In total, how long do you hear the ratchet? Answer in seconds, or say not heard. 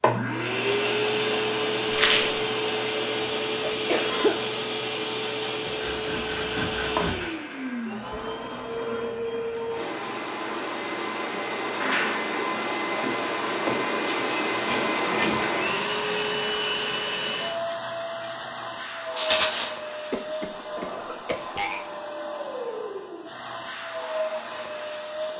not heard.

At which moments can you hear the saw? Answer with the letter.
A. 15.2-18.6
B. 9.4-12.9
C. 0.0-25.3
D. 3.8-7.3
D.